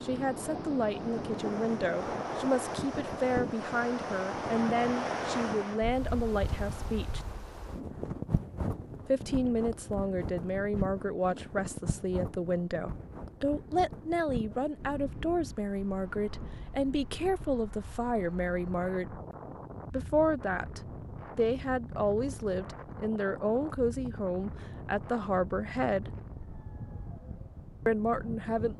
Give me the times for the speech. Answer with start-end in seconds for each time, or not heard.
0.0-7.2, 9.1-19.2, 19.9-26.1, 27.9-28.7.